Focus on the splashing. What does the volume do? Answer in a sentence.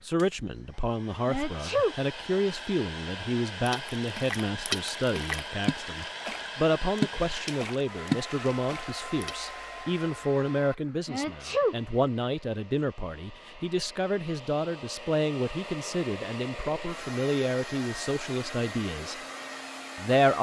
The loudness of the splashing goes down, then up.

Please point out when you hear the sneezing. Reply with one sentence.
You can hear the sneezing from 1.2 to 1.9 s and from 11.1 to 11.8 s.